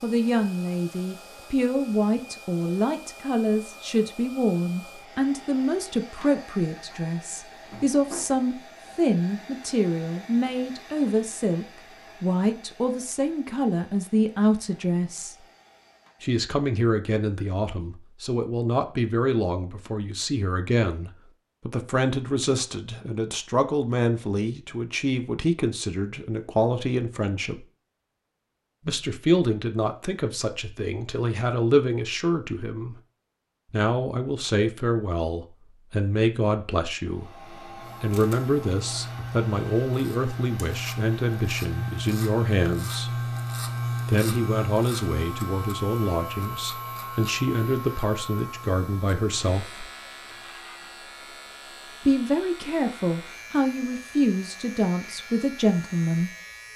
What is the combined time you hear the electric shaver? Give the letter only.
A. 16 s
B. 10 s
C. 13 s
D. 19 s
D.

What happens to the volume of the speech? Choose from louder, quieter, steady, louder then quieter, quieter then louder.
steady.